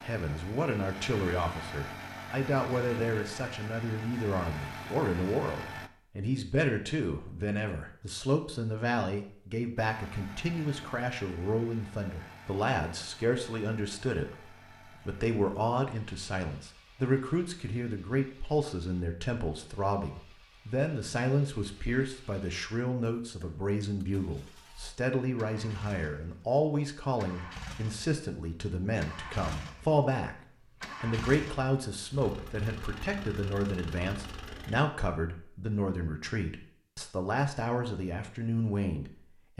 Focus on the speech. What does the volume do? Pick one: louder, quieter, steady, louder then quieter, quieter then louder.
steady.